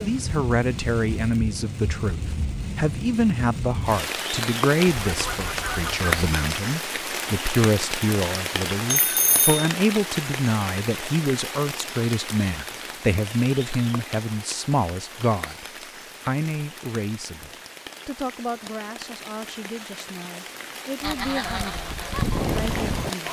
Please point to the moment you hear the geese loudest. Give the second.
22 s.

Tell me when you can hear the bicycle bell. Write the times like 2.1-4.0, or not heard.
8.9-9.7.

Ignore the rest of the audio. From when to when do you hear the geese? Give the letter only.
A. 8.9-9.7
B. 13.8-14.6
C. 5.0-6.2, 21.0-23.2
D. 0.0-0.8
C.